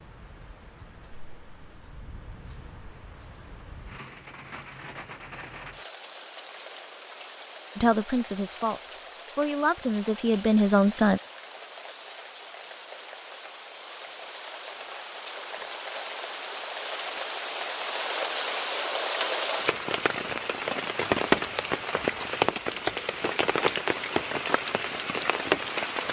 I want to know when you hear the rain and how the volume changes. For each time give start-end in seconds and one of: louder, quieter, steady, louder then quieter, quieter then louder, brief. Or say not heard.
0.0-26.0 louder.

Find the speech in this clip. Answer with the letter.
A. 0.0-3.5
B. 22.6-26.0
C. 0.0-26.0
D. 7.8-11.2
D.